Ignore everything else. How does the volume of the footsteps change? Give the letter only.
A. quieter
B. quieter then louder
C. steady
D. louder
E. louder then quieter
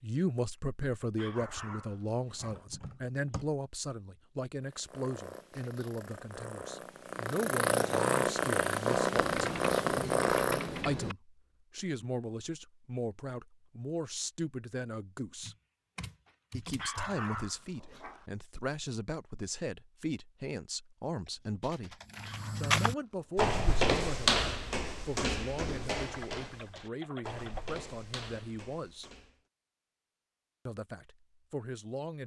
A.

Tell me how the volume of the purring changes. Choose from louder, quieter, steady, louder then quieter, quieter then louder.
louder.